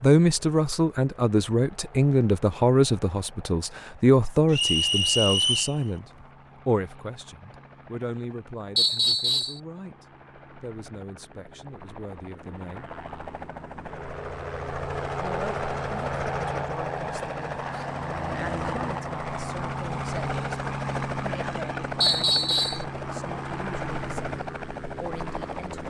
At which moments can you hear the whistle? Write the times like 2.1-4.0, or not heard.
4.5-5.8, 8.8-9.6, 22.0-22.9.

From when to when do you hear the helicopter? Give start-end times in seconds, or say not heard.
0.0-25.8.